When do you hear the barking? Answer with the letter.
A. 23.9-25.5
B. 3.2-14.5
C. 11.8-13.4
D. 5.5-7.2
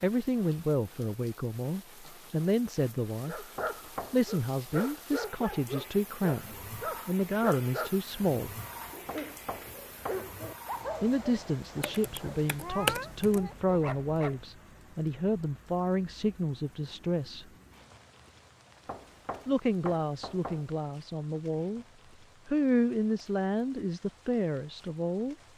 B.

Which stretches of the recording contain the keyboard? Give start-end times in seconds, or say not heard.
11.8-13.4.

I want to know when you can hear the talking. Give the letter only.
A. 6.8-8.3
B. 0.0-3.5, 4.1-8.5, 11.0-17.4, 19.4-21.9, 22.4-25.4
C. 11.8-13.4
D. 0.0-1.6
B.